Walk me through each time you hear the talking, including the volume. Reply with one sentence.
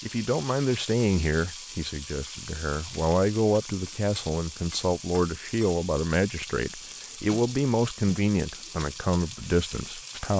The talking can be heard from 0.0 to 10.3 s, at a steady volume.